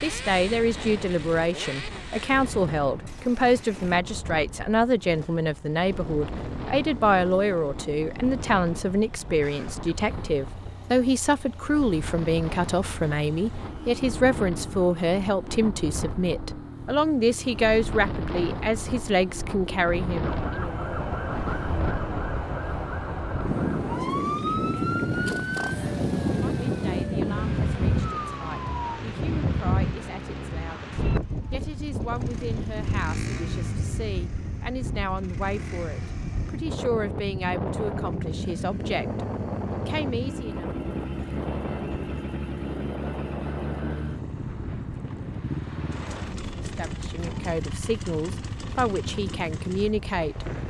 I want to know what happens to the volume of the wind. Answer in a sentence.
The loudness of the wind goes up, then down.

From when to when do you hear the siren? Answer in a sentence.
You can hear the siren from 20.2 to 29.1 s.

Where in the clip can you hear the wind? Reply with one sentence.
You can hear the wind from 0.0 to 50.6 s.